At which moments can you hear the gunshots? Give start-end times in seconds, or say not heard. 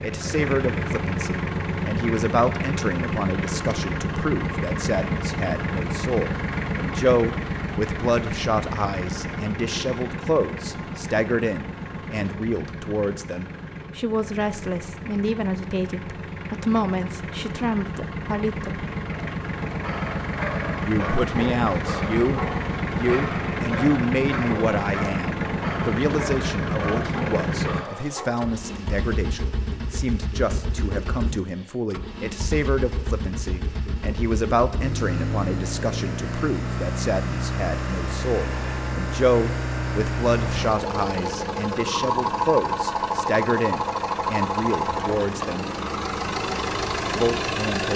not heard.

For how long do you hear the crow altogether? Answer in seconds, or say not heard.
not heard.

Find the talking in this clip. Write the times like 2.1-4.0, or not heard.
0.0-18.8, 20.9-45.6, 47.1-47.9.